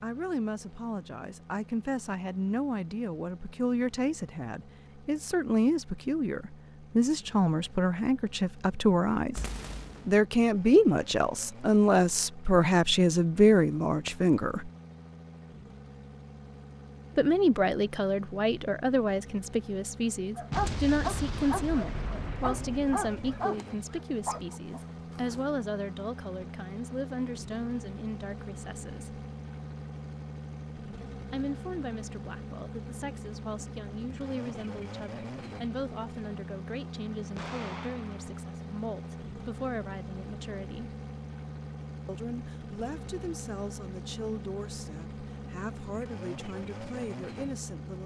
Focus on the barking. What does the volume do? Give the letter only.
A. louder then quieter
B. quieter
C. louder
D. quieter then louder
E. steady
B.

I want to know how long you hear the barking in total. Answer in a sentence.
You can hear the barking for 5 seconds altogether.